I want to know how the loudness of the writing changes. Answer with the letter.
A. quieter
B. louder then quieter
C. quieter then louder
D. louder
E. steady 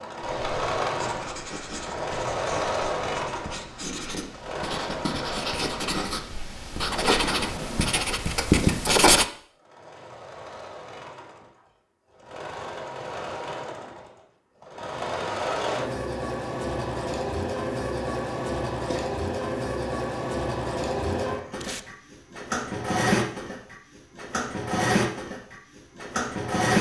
D.